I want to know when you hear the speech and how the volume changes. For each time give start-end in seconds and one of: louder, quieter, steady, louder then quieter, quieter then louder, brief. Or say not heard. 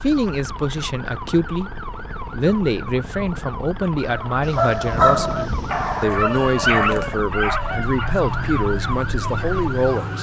0.0-10.1 steady.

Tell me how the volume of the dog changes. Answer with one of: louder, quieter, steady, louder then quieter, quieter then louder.
quieter.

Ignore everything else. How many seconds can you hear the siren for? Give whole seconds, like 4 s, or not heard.
10 s.